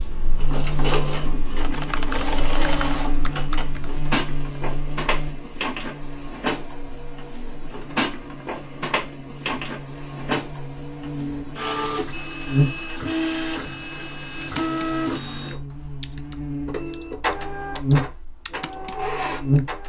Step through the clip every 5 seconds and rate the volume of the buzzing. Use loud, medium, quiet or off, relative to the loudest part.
medium, quiet, loud, loud.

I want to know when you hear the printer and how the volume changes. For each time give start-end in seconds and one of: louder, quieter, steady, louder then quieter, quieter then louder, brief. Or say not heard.
0.0-19.8 steady.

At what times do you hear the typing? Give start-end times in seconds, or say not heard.
1.6-3.9, 14.6-19.6.